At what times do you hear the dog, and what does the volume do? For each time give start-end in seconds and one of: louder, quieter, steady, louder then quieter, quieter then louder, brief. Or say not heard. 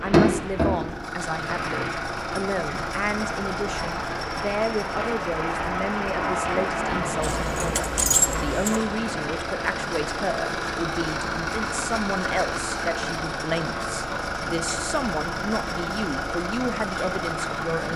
not heard.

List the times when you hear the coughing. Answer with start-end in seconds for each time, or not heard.
not heard.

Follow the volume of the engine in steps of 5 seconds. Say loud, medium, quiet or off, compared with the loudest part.
loud, medium, loud, loud.